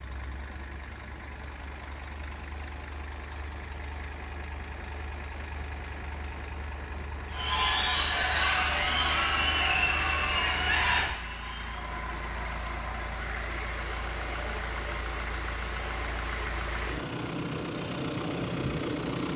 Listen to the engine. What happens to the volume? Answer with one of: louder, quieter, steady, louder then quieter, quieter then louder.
louder.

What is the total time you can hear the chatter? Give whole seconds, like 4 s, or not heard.
12 s.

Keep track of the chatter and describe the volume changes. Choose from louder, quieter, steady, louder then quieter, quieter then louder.
quieter.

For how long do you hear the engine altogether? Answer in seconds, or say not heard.
19 s.